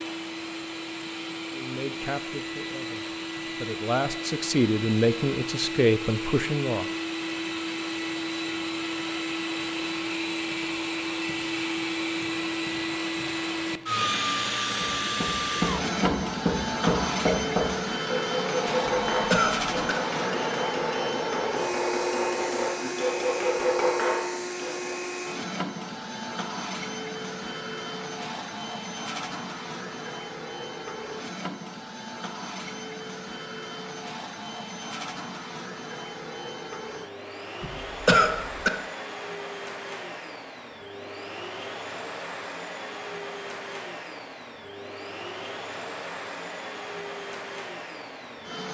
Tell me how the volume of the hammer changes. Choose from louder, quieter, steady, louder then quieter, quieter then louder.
steady.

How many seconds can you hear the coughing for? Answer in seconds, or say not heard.
2 s.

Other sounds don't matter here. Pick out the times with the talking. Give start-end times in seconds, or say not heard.
1.5-6.8.